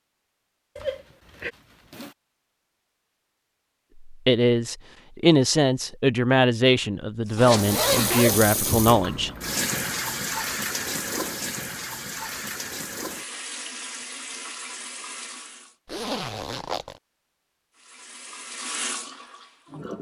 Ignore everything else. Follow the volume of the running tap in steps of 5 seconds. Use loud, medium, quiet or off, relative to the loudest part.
off, loud, loud, medium.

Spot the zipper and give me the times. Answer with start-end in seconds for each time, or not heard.
0.8-2.1, 7.3-8.9, 15.8-17.0.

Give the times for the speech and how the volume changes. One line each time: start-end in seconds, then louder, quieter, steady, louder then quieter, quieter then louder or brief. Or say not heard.
4.0-9.3 steady.